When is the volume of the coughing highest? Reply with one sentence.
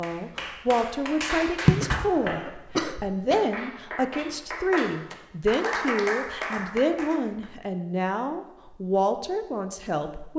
The loudest moment of the coughing is at 2 seconds.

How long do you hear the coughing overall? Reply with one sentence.
You can hear the coughing for 2 seconds altogether.